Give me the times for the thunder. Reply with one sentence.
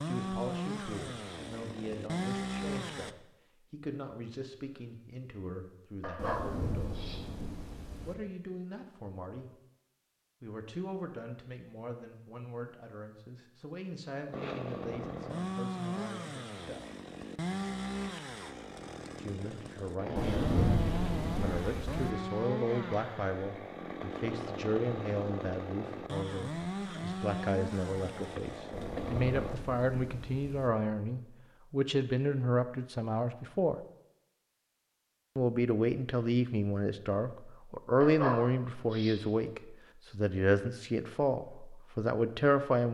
The thunder can be heard from 6.2 to 8.2 s, from 20.1 to 22.1 s and from 28.7 to 30.7 s.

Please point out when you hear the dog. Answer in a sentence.
The dog can be heard from 6.0 to 7.3 s and from 38.0 to 39.2 s.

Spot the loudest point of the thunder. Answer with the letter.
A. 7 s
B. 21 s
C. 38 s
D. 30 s
B.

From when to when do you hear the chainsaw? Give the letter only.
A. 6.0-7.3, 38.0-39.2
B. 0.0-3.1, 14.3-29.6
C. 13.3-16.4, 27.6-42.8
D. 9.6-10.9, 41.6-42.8
B.